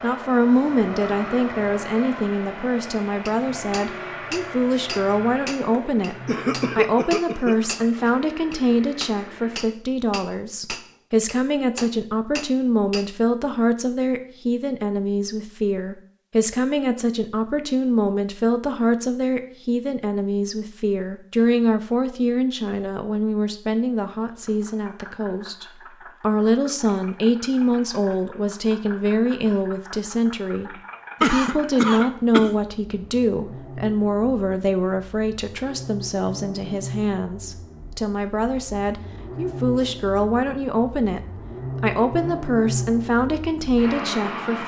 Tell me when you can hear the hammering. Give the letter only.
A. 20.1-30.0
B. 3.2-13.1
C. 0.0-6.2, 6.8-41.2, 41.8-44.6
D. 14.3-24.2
B.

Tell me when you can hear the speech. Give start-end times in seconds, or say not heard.
0.0-6.2, 6.8-41.2, 41.8-44.6.